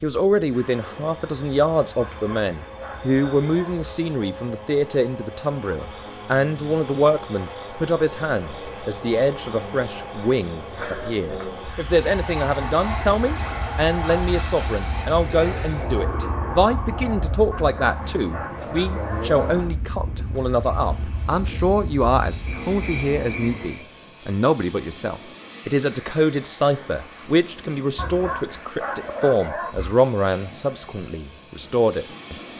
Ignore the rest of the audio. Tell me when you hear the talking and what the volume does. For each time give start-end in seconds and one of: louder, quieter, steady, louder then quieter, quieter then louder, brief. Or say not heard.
0.0-32.4 steady.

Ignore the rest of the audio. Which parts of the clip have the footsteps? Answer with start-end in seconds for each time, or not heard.
not heard.